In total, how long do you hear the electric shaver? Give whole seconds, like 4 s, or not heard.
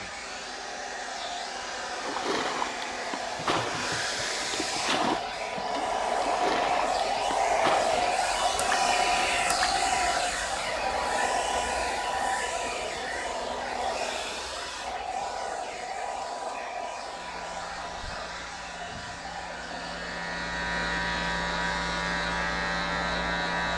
7 s.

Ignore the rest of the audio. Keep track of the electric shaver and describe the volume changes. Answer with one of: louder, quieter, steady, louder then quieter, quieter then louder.
louder.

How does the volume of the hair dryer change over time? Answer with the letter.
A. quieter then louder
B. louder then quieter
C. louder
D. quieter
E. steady
B.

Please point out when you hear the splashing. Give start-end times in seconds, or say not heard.
1.9-9.7.